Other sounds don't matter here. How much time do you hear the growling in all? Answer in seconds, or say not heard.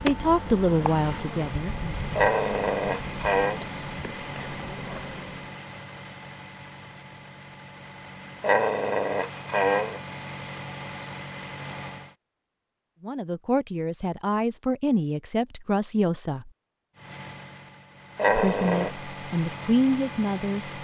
4 s.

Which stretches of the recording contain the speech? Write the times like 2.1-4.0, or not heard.
0.0-2.1, 13.0-16.5, 18.3-20.7.